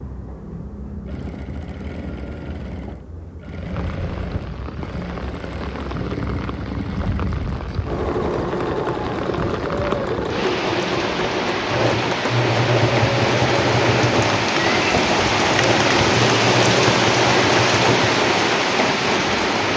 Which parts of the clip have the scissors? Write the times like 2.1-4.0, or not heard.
not heard.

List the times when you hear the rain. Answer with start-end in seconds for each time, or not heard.
3.5-19.7.